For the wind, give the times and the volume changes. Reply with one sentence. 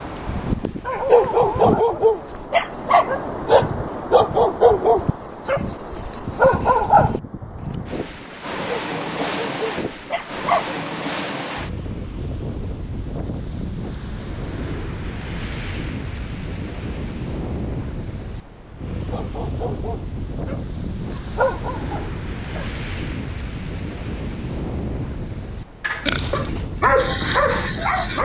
The wind can be heard from 0.0 to 28.2 s, at a steady volume.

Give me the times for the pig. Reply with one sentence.
You can hear the pig from 25.8 to 26.7 s.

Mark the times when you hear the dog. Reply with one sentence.
The dog can be heard from 0.1 to 10.8 s, from 19.1 to 22.7 s and from 26.3 to 28.2 s.